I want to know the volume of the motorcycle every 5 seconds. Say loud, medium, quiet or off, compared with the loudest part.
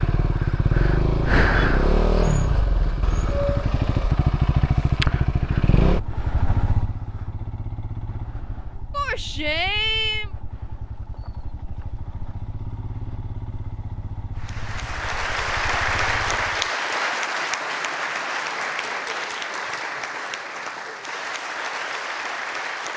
loud, medium, quiet, quiet, off.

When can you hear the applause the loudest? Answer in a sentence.
The volume of the applause peaks at 16 seconds.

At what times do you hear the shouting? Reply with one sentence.
The shouting can be heard from 8.9 to 10.3 s.